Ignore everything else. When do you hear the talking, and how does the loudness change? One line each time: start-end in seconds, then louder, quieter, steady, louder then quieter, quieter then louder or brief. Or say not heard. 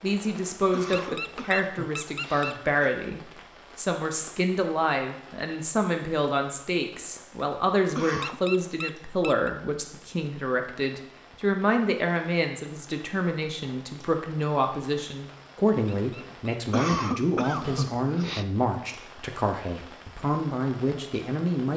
0.0-21.7 steady.